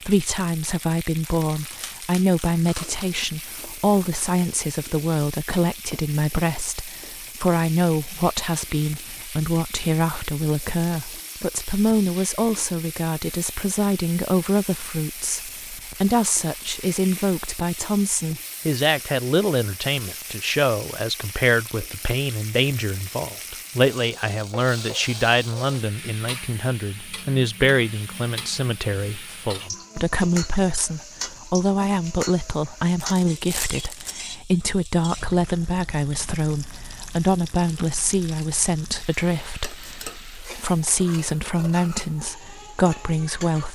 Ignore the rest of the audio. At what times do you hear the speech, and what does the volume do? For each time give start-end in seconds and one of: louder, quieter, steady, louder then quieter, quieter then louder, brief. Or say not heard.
0.1-43.6 steady.